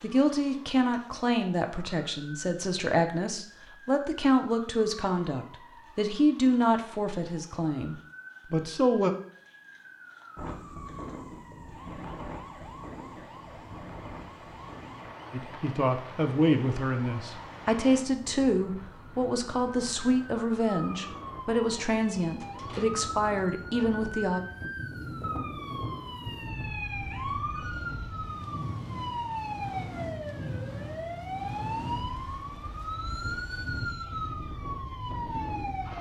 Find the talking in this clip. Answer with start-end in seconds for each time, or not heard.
0.0-9.1, 15.3-24.4.